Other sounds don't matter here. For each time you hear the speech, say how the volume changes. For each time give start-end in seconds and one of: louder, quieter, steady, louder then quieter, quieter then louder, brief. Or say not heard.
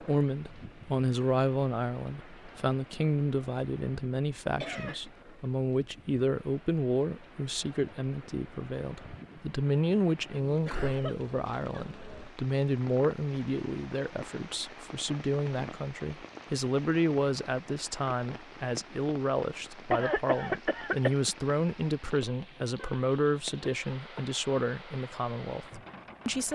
0.0-26.5 steady.